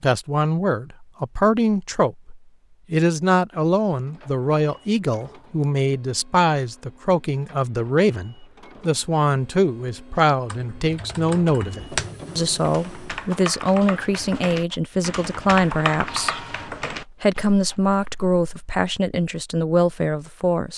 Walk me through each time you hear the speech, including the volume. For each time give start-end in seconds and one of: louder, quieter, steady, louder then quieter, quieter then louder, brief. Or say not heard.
0.0-20.7 steady.